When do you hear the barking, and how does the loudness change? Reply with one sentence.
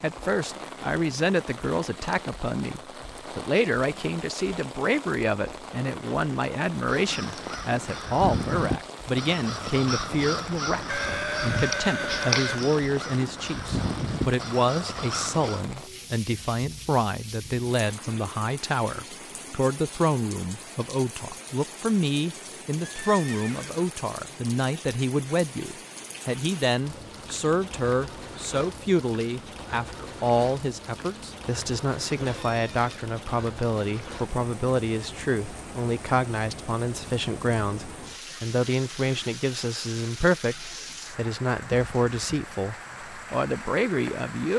The barking can't be heard in this clip.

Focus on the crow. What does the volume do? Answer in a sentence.
The volume of the crow stays about the same.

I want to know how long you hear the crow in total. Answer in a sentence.
The crow can be heard for 9 seconds in total.